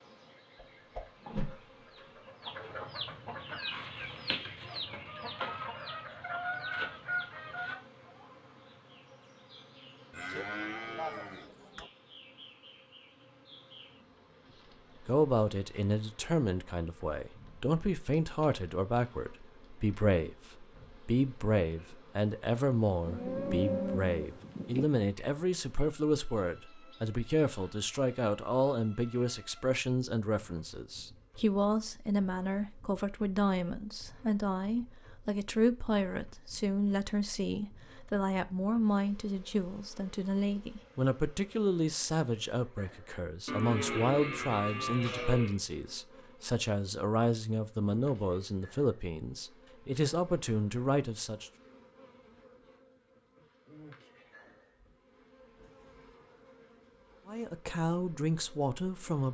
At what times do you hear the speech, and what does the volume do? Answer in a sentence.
The speech can be heard from 15.1 to 51.5 s, at a steady volume; and briefly from 57.2 to 59.2 s.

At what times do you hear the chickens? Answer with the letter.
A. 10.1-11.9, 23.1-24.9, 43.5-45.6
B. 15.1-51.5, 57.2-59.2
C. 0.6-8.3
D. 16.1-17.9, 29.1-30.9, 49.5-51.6
C.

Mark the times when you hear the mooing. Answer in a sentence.
The mooing can be heard from 10.1 to 11.9 s, from 23.1 to 24.9 s and from 43.5 to 45.6 s.